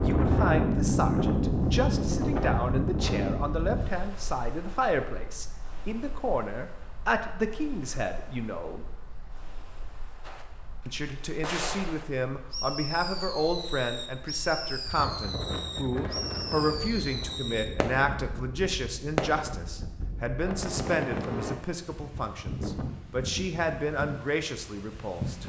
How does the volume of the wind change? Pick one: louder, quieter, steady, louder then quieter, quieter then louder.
quieter then louder.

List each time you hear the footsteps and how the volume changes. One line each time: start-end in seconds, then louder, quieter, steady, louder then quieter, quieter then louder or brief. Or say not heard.
not heard.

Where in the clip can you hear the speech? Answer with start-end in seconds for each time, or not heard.
0.0-8.8, 10.8-25.4.